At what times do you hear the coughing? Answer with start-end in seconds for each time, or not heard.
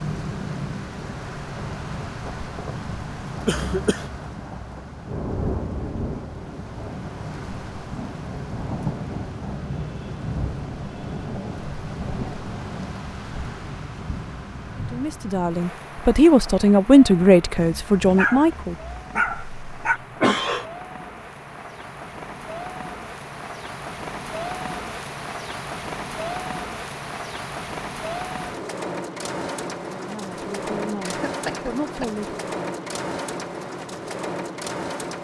3.5-4.1, 19.2-20.6, 31.2-32.1.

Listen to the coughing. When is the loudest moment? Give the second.
20 s.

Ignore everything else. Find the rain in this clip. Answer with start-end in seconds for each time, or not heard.
0.0-35.1.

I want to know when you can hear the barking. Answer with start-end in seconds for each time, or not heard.
17.6-20.0.